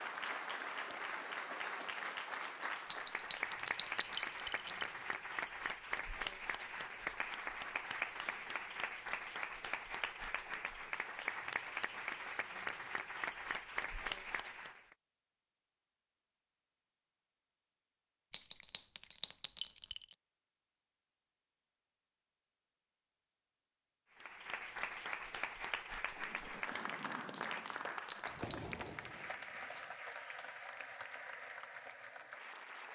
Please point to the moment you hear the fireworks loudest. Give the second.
29 s.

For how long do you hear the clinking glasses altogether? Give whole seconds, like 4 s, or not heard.
5 s.